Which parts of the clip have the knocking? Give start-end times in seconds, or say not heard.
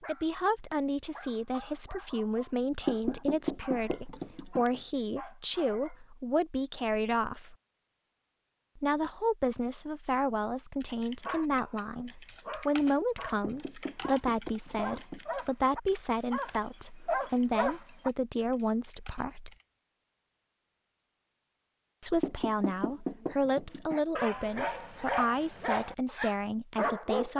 2.9-4.8, 13.4-15.3, 22.2-24.0.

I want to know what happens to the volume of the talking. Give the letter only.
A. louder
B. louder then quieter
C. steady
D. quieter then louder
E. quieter
C.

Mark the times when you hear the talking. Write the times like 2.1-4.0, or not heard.
0.1-7.5, 8.8-19.5, 22.0-27.3.